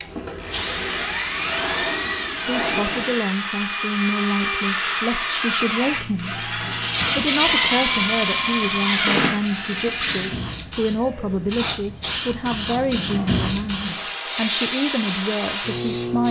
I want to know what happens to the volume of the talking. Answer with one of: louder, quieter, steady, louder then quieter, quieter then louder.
steady.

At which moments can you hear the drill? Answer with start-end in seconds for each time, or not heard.
0.0-10.3.